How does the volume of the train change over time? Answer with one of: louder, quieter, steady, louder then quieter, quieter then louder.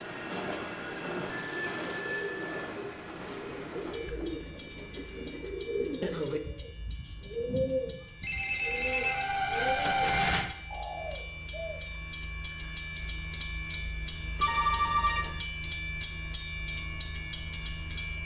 quieter then louder.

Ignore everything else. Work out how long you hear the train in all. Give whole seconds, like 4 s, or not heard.
18 s.